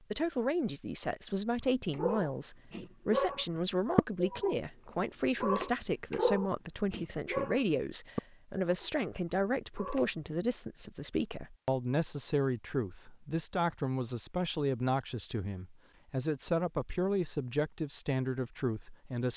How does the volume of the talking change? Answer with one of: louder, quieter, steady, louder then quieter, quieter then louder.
steady.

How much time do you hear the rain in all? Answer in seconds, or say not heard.
not heard.